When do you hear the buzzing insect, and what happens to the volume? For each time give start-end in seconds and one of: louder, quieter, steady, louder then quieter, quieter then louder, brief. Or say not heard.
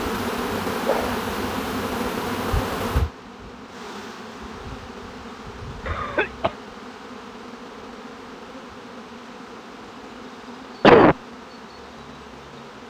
0.0-12.8 quieter.